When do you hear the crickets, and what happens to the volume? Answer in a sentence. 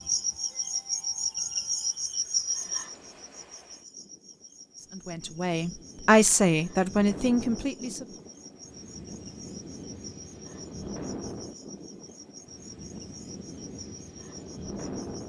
You can hear the crickets from 0.0 to 15.2 s, getting quieter.